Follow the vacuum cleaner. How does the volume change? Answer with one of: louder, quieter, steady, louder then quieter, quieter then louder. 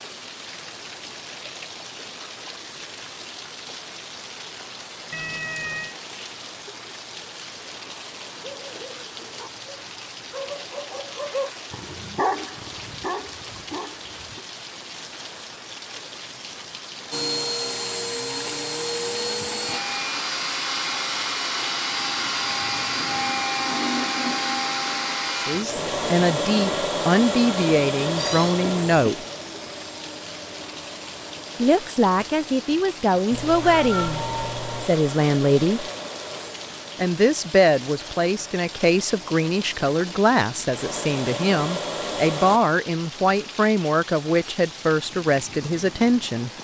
quieter.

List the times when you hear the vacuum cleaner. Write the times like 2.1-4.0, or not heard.
17.1-42.6.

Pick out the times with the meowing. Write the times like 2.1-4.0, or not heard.
5.1-6.0, 28.1-28.9, 33.3-34.9.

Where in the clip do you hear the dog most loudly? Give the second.
12 s.